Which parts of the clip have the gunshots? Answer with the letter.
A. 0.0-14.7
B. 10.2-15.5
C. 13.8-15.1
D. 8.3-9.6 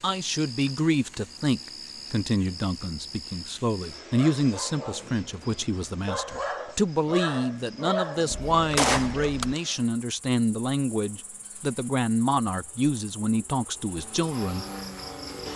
D.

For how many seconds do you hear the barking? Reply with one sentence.
You can hear the barking for 5 seconds altogether.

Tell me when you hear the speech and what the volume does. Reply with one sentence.
The speech can be heard from 0.0 to 14.7 s, at a steady volume.